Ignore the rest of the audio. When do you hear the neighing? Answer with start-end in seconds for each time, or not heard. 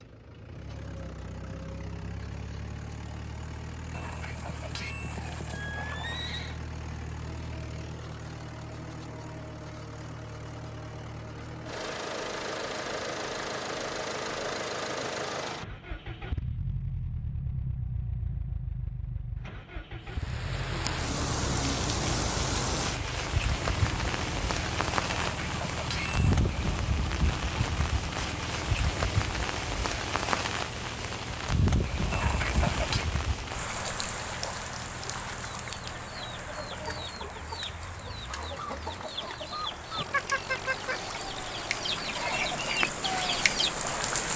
3.9-6.6, 25.1-26.4, 32.1-33.1.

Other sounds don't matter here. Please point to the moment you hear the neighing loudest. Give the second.
33 s.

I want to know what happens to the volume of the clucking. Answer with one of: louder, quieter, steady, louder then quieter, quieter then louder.
louder.